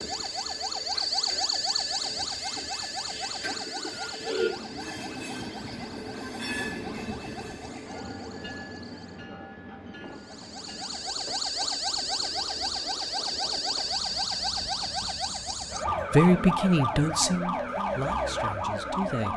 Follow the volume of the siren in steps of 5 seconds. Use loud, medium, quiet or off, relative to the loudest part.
loud, quiet, loud, loud.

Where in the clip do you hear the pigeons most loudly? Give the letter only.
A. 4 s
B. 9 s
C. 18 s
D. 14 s
A.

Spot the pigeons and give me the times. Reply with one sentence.
The pigeons can be heard from 3.1 to 4.5 s.